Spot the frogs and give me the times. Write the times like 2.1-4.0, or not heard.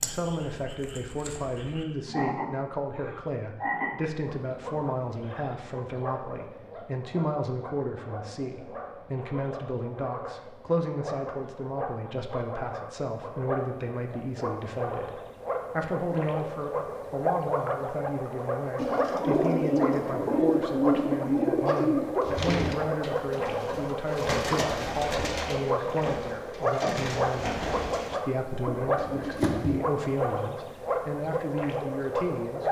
0.0-32.6.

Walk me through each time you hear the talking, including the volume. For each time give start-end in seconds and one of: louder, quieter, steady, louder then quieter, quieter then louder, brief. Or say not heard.
0.0-32.6 steady.